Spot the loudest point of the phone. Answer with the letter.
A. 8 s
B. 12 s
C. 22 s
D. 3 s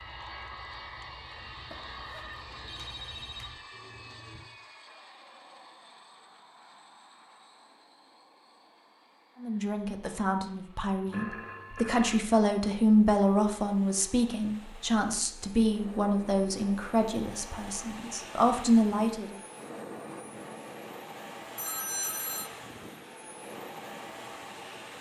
C.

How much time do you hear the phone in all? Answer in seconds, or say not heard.
4 s.